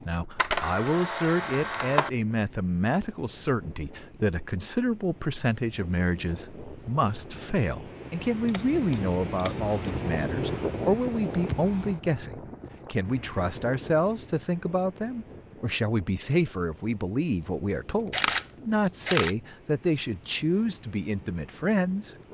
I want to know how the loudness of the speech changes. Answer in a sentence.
The volume of the speech stays about the same.